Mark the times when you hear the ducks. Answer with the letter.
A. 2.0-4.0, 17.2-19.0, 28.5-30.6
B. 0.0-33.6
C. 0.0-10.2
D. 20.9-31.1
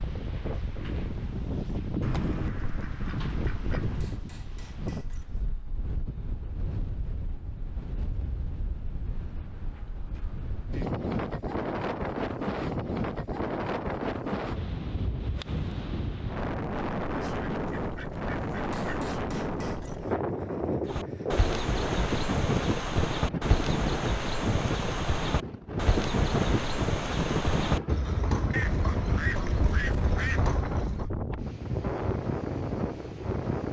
A.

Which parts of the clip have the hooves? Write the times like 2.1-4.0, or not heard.
20.9-31.1.